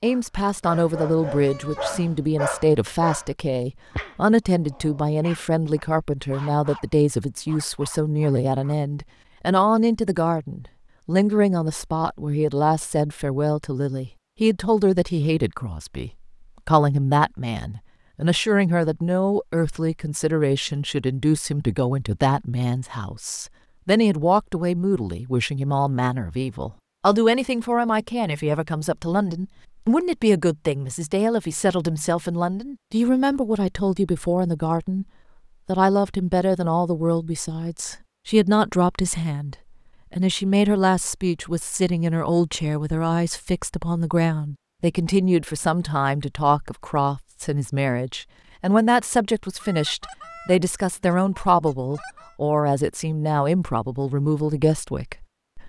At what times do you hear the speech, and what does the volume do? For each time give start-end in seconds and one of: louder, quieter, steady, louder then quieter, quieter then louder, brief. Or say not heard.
0.0-35.0 steady
35.6-55.6 steady.